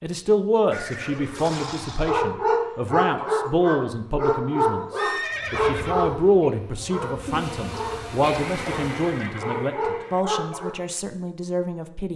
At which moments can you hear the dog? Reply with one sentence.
You can hear the dog from 1.4 to 10.8 s.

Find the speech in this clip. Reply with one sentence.
The speech can be heard from 0.0 to 12.1 s.